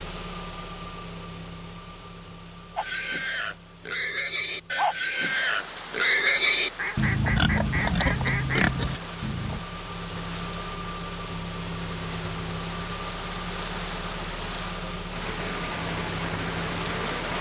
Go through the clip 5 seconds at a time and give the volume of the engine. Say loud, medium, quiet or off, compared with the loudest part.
medium, medium, loud, loud.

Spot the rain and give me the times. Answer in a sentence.
You can hear the rain from 5.1 to 17.3 s.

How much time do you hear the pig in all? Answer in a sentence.
You can hear the pig for 7 seconds altogether.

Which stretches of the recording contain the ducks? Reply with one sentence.
The ducks can be heard from 6.8 to 8.7 s.